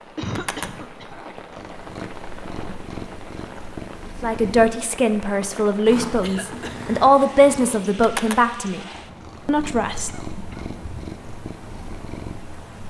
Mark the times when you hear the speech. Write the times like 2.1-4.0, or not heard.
4.2-8.8, 9.4-10.1.